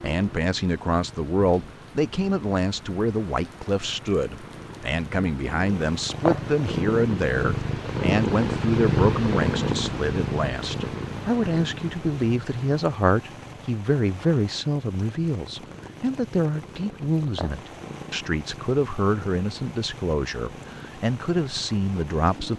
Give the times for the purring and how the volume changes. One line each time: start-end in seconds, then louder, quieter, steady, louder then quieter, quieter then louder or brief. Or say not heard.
0.1-22.5 louder then quieter.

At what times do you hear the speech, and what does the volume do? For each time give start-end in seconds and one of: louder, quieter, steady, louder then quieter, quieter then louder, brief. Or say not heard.
0.0-22.5 steady.